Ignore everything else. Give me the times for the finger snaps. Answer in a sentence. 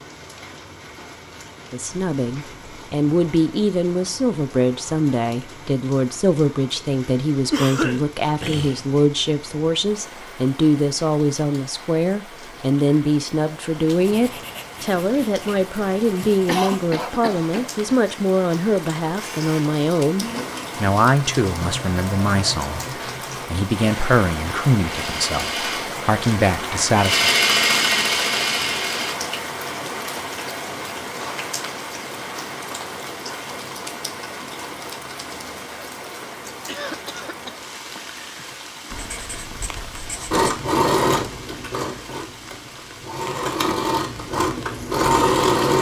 You can't hear the finger snaps here.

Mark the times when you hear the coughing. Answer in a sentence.
The coughing can be heard from 7.5 to 8.9 s, from 16.4 to 17.9 s and from 36.6 to 37.6 s.